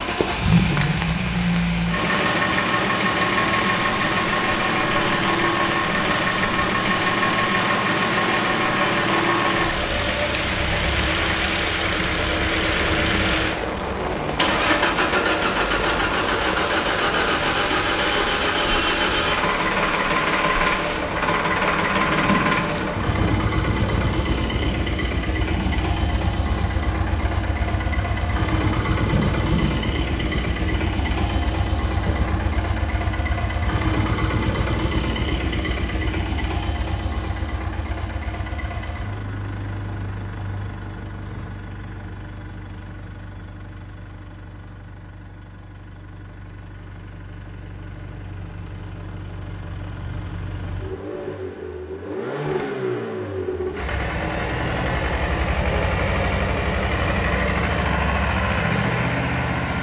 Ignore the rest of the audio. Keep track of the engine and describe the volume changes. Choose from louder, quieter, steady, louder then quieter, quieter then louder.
quieter then louder.